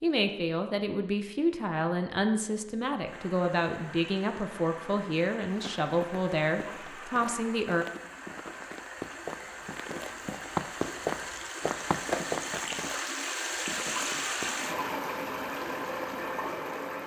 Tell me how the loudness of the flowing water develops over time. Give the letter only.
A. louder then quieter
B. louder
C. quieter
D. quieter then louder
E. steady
B.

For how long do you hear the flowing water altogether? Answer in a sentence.
The flowing water can be heard for 14 seconds in total.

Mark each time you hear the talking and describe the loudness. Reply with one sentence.
You can hear the talking from 0.0 to 7.8 s, at a steady volume.